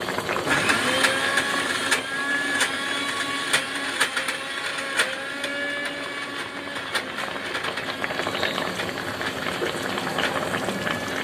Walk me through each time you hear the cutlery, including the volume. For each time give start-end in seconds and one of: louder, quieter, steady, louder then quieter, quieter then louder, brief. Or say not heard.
not heard.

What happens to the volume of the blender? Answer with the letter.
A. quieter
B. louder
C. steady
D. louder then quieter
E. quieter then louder
A.